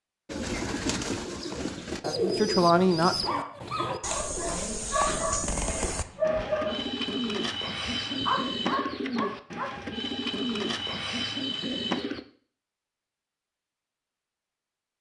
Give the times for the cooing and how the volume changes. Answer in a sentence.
You can hear the cooing from 0.2 to 12.2 s, at a steady volume.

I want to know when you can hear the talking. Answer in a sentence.
The talking can be heard from 2.0 to 3.2 s.